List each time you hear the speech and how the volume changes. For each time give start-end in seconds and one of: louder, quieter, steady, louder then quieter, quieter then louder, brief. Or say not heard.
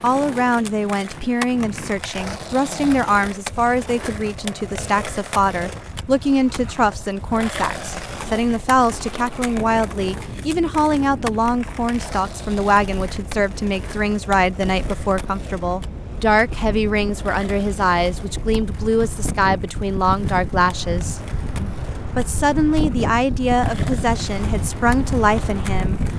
0.0-26.0 steady.